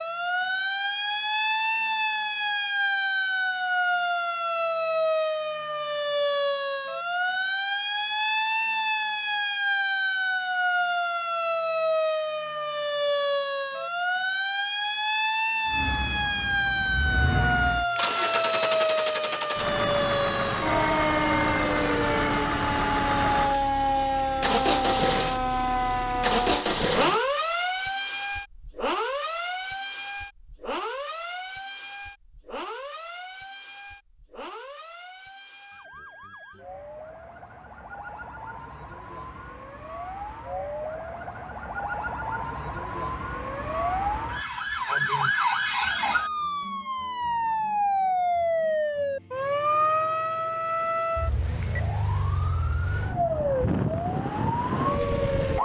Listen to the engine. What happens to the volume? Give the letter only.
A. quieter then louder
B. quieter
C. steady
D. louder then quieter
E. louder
E.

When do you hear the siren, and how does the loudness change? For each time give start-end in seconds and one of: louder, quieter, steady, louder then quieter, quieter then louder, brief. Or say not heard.
0.0-55.6 quieter then louder.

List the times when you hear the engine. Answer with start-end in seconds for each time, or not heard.
15.7-27.2.